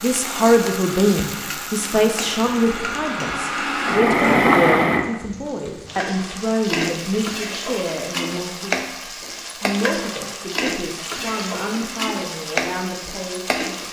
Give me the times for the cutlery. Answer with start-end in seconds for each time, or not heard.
not heard.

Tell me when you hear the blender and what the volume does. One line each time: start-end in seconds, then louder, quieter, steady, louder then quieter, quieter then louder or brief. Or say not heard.
0.0-5.2 louder.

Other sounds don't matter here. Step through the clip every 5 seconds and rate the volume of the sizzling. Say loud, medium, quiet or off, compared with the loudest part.
medium, loud, loud.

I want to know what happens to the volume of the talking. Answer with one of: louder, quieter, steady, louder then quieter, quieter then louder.
quieter.